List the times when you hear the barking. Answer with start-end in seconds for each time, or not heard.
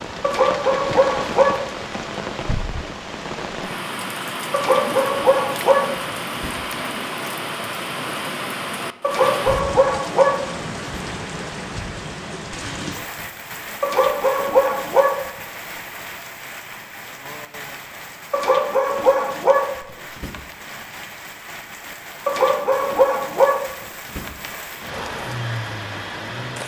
0.2-1.7, 4.5-6.9, 9.0-11.0, 13.8-15.2, 18.3-20.4, 22.2-24.6.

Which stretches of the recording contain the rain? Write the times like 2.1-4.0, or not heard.
0.0-26.6.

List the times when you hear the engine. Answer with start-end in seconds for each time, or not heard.
24.9-26.6.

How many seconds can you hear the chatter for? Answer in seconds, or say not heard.
not heard.